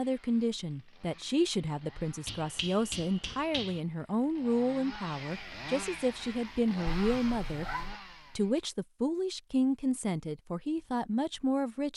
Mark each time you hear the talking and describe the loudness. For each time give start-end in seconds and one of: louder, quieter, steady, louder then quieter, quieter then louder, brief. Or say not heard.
0.0-11.9 steady.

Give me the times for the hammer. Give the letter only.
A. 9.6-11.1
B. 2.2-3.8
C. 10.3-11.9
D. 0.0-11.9
B.